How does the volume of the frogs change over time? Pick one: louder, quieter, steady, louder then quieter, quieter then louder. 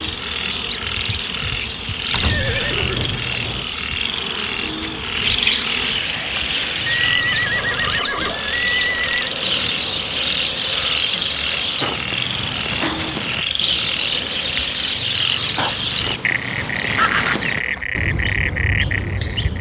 steady.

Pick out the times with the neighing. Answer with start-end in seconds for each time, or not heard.
2.1-3.6, 7.0-9.3, 16.9-17.9.